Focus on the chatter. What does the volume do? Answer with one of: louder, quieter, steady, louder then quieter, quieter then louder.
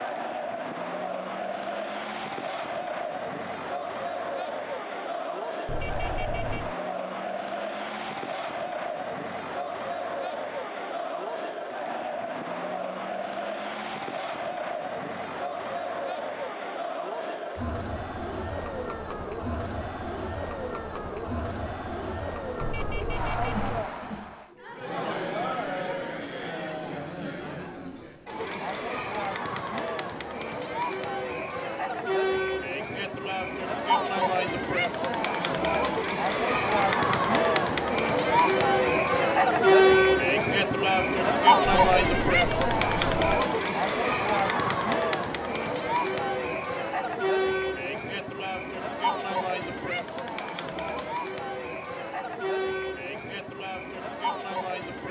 louder then quieter.